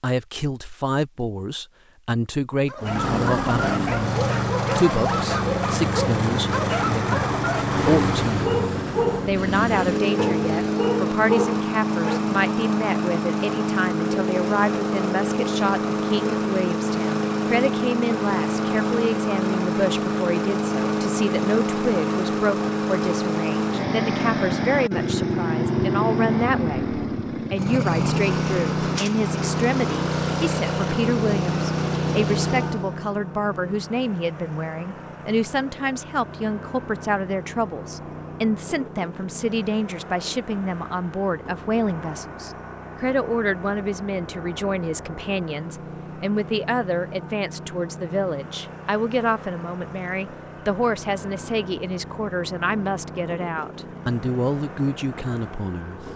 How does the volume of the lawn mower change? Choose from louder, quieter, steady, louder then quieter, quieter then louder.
quieter.